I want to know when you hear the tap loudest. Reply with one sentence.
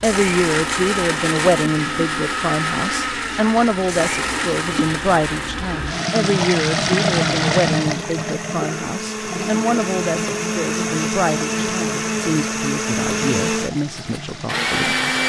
The volume of the tap peaks at 7 seconds.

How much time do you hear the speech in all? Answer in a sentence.
You can hear the speech for 15 seconds altogether.